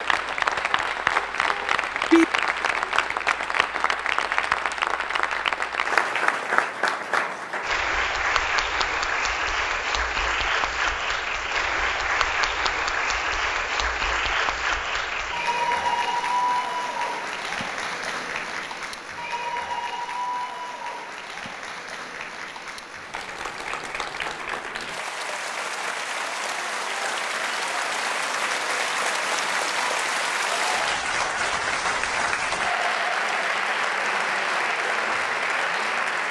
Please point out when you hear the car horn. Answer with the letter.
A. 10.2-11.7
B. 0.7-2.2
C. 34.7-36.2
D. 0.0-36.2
B.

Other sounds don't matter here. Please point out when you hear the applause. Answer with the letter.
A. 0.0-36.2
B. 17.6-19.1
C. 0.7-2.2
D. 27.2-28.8
A.